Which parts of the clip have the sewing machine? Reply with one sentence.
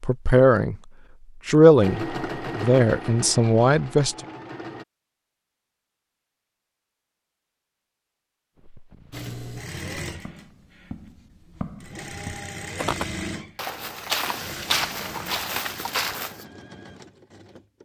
You can hear the sewing machine from 1.8 to 4.8 s and from 9.1 to 17.8 s.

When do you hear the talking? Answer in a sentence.
You can hear the talking from 0.0 to 0.8 s and from 1.4 to 4.2 s.